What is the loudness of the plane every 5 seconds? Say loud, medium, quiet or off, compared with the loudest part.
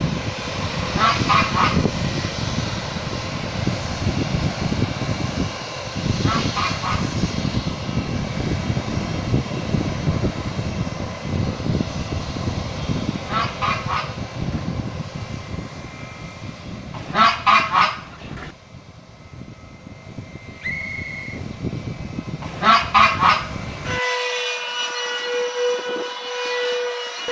loud, loud, loud, quiet, medium, loud.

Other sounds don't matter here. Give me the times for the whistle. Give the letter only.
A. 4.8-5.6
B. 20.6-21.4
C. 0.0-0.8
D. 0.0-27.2
B.